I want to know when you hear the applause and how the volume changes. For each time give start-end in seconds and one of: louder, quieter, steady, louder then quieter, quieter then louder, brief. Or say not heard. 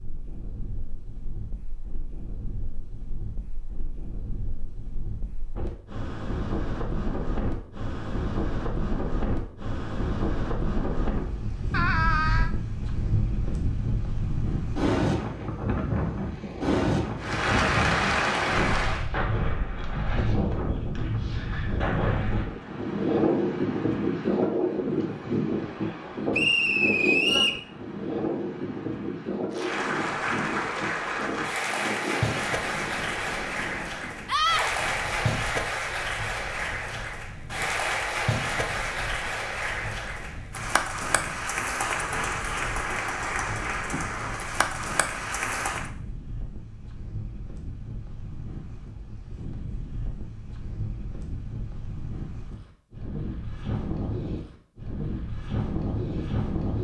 17.1-19.1 brief
29.5-45.9 steady.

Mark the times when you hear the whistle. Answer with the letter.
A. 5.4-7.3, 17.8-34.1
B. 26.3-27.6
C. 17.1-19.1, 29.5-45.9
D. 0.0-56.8
B.